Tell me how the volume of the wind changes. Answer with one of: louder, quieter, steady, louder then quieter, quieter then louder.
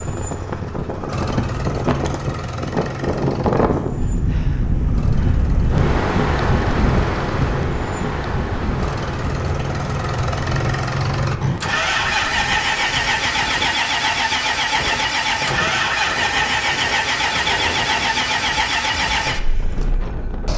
quieter.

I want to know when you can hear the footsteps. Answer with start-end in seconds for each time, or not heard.
not heard.